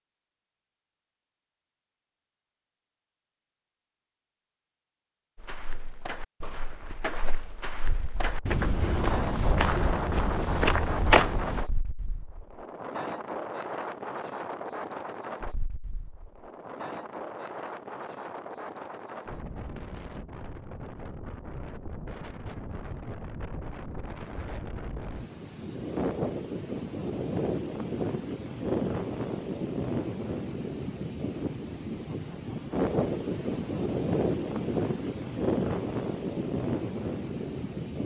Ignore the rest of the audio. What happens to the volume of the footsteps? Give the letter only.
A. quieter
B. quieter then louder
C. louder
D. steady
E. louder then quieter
C.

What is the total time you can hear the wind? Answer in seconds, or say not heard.
30 s.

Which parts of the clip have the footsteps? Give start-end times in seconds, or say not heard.
5.3-11.7.